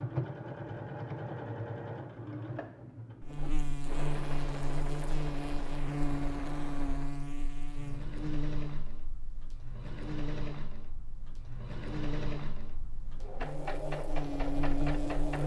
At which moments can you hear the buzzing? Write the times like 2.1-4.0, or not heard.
3.2-15.4.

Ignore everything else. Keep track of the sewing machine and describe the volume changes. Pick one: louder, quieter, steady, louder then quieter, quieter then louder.
quieter then louder.